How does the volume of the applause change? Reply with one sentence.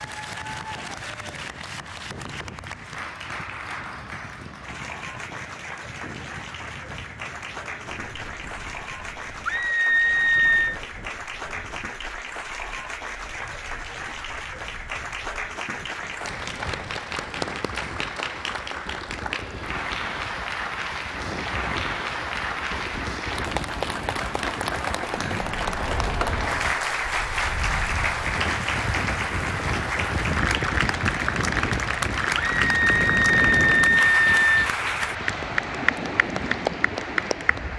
The loudness of the applause goes up.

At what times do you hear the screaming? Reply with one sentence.
You can hear the screaming from 9.4 to 10.8 s and from 32.4 to 34.7 s.